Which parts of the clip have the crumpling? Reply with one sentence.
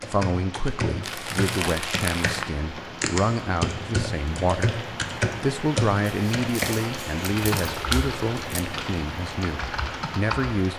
You can hear the crumpling from 1.0 to 2.5 s and from 6.0 to 8.7 s.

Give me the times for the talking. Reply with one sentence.
You can hear the talking from 0.1 to 4.8 s and from 5.4 to 10.7 s.